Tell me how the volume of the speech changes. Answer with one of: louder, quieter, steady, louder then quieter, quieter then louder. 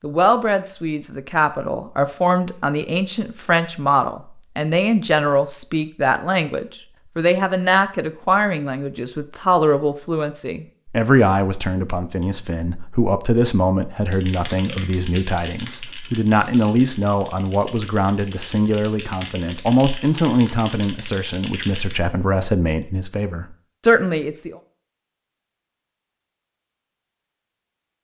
steady.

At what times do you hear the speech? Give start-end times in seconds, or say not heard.
0.0-24.6.